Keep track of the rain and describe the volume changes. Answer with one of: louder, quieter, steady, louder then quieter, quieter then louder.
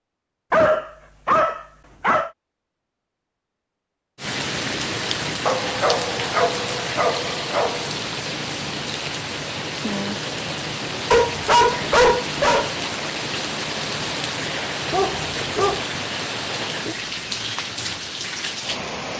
steady.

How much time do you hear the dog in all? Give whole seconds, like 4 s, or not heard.
7 s.